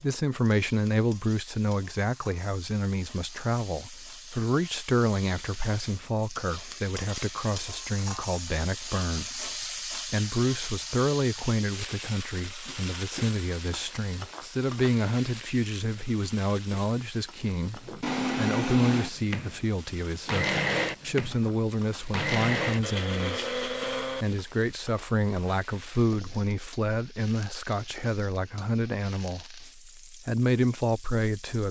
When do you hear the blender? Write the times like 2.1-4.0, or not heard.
17.5-24.4.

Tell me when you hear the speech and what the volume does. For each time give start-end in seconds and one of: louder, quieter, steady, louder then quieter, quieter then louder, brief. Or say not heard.
0.0-31.6 steady.